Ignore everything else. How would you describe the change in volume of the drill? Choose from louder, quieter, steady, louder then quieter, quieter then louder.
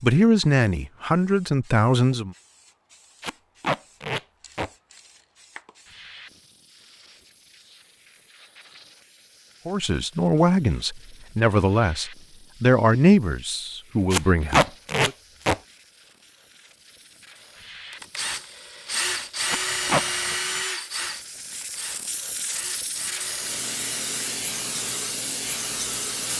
quieter.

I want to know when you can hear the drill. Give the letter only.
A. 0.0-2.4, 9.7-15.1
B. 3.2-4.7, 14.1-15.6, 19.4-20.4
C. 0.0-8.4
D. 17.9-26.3
D.